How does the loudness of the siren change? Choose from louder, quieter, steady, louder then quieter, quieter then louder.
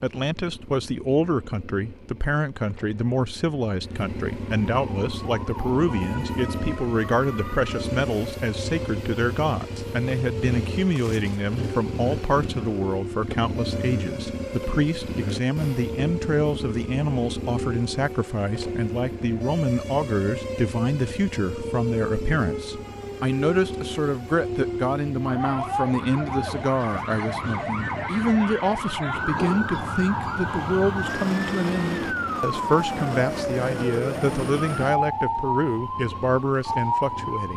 louder.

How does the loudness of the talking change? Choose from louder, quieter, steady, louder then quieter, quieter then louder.
steady.